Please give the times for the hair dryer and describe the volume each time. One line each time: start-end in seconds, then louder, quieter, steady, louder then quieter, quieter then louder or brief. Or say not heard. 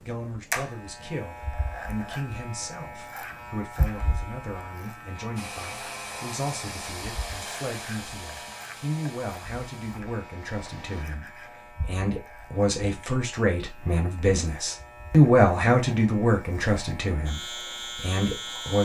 5.3-11.1 quieter.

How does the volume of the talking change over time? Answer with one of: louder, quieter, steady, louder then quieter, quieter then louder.
louder.